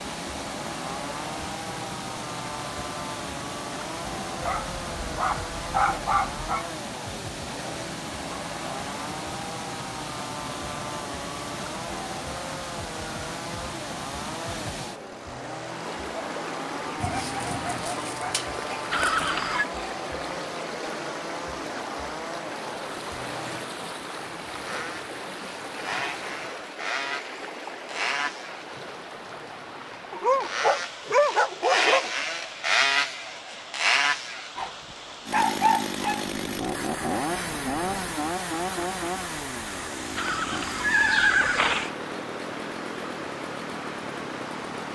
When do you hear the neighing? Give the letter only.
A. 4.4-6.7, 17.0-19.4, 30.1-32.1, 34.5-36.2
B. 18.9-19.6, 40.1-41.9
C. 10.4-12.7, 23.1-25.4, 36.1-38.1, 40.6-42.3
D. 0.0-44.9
B.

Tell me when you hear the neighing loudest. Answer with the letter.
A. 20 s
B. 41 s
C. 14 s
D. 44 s
B.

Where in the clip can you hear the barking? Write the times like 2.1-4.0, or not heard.
4.4-6.7, 17.0-19.4, 30.1-32.1, 34.5-36.2.